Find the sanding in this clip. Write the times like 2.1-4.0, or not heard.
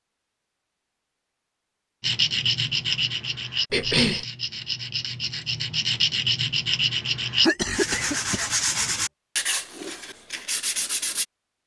2.0-11.2.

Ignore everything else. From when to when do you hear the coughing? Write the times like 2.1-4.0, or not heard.
3.7-4.2, 7.4-8.4.